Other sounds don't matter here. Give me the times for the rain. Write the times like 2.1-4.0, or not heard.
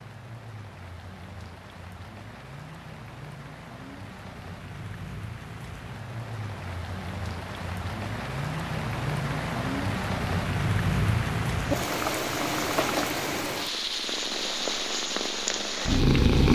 0.0-16.5.